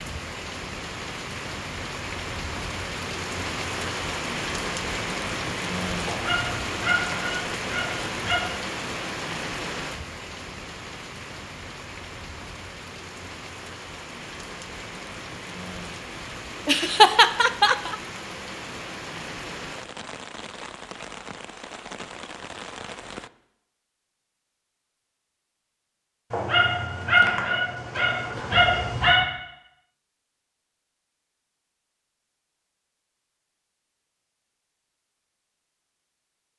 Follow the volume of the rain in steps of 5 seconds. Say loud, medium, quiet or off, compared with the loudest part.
loud, loud, medium, medium, medium, off, off, off.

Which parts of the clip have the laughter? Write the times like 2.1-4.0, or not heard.
16.6-17.9.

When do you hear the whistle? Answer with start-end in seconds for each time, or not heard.
not heard.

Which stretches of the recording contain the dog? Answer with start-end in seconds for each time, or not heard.
6.0-8.4, 26.3-29.2.